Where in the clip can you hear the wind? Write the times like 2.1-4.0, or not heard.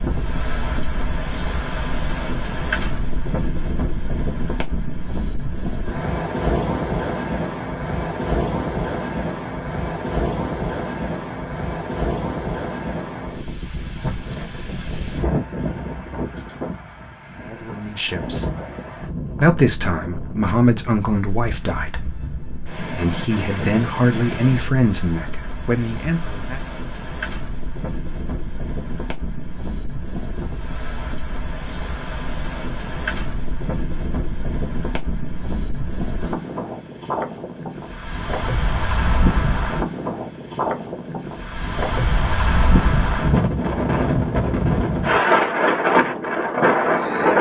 0.0-47.3.